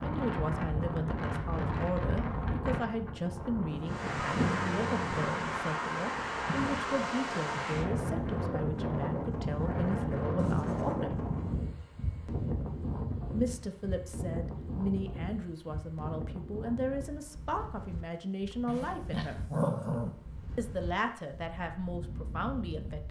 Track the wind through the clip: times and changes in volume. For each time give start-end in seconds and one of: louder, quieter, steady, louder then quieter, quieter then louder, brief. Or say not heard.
0.0-23.0 quieter.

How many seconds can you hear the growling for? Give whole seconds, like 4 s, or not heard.
4 s.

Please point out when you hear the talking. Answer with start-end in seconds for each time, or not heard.
0.0-11.2, 13.3-19.4, 20.6-23.0.